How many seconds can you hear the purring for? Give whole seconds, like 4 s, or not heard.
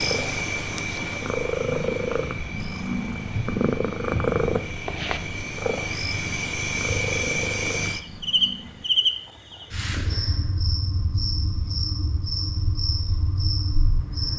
9 s.